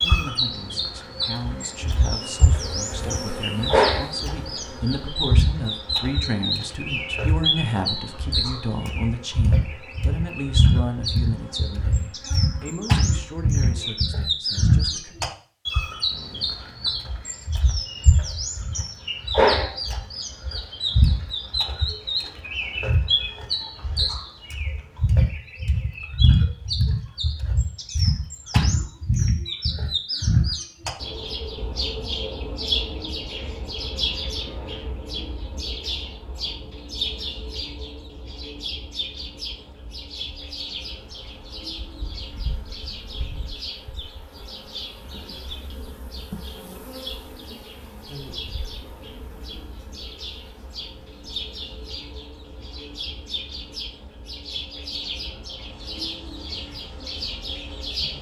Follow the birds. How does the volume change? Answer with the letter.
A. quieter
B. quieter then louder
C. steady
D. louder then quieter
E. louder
A.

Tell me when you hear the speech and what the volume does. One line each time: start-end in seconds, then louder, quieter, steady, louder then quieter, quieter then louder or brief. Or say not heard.
0.0-15.2 louder then quieter.